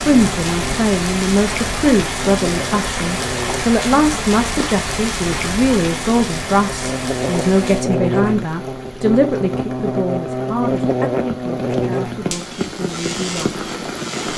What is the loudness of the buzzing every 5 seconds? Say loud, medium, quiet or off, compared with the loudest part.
medium, loud, loud.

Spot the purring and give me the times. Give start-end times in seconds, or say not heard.
not heard.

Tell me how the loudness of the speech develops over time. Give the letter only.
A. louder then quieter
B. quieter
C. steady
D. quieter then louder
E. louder
B.